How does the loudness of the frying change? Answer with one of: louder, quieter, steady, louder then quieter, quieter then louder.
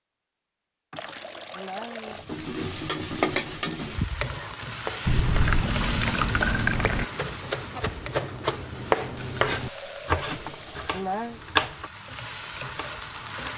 quieter then louder.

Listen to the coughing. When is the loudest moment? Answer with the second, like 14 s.
11 s.